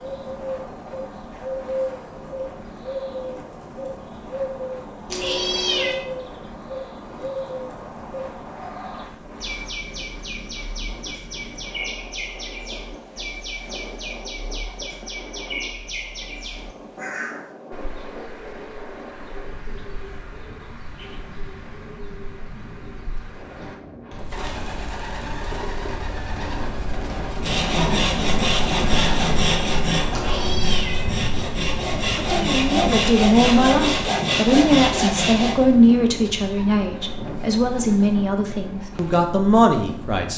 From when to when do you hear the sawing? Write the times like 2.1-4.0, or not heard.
27.3-35.6.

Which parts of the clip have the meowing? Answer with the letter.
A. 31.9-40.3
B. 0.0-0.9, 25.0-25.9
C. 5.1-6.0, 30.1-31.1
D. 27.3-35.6
C.